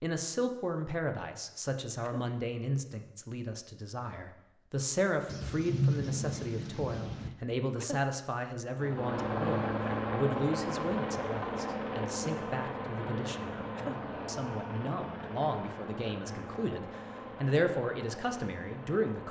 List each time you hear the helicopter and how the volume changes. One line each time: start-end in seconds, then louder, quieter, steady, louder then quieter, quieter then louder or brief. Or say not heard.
8.8-19.2 quieter.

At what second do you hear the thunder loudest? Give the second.
6 s.